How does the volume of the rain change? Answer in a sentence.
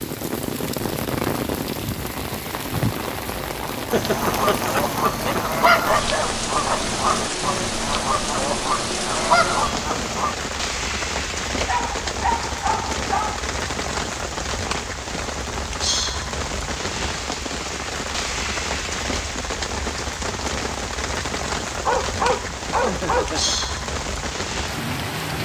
The loudness of the rain stays about the same.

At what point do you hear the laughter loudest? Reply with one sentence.
The volume of the laughter peaks at 4 seconds.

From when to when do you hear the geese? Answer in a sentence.
You can hear the geese from 3.9 to 10.3 s.